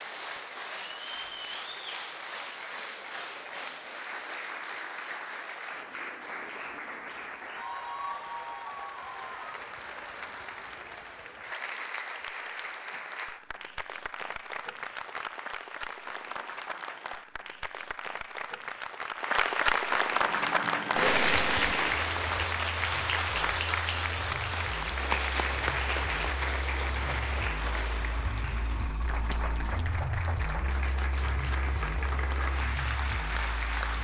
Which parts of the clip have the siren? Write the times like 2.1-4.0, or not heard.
not heard.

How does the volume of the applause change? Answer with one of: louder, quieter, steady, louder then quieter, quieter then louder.
louder then quieter.